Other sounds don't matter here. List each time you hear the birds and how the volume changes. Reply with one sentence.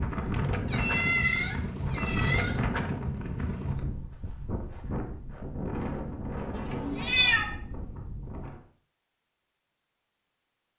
The birds can't be heard in this clip.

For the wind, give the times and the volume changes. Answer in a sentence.
The wind can be heard from 0.0 to 8.6 s, getting quieter.